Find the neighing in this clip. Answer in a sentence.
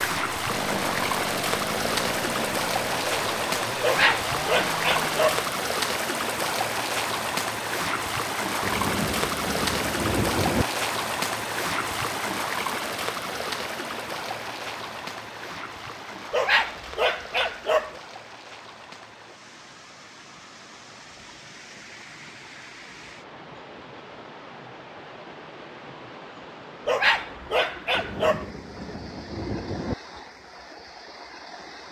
The neighing can't be heard in this clip.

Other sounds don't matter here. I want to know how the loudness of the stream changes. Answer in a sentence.
The loudness of the stream goes down.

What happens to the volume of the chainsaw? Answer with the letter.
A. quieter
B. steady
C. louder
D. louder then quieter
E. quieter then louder
B.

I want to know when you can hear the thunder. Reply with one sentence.
You can hear the thunder from 8.6 to 10.7 s and from 27.9 to 29.9 s.